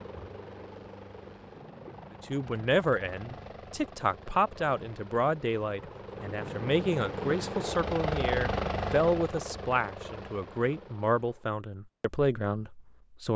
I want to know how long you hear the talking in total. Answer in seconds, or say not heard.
11 s.